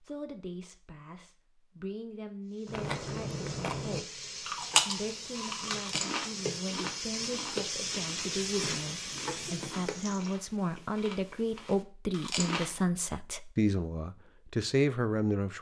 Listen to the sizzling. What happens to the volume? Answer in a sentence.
The loudness of the sizzling goes up.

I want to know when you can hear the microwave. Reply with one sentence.
The microwave can't be heard in this clip.